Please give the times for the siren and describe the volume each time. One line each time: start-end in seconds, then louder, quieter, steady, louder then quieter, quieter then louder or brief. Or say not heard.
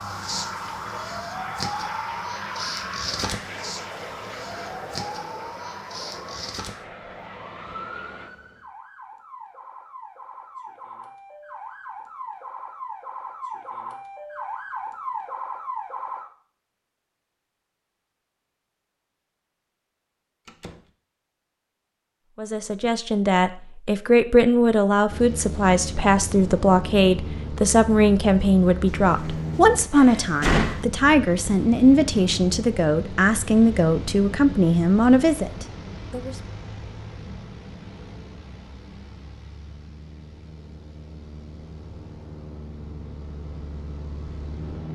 0.0-16.3 quieter then louder.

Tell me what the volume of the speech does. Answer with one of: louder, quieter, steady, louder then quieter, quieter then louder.
steady.